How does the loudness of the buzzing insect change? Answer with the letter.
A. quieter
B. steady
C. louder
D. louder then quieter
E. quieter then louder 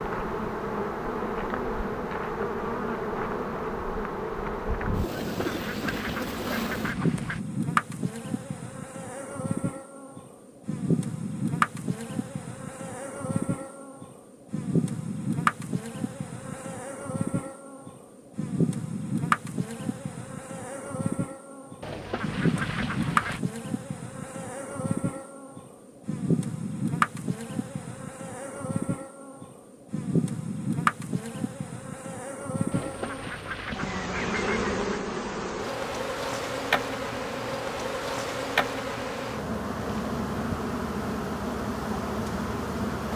B.